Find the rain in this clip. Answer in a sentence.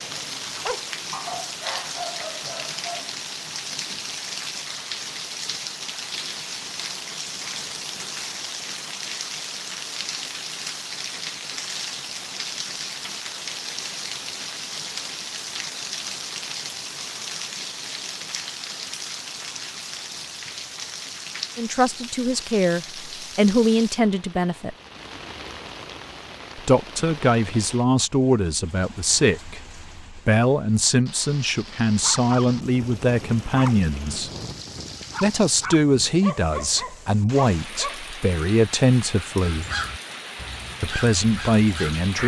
You can hear the rain from 0.0 to 42.2 s.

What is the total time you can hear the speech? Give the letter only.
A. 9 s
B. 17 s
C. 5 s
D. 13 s
B.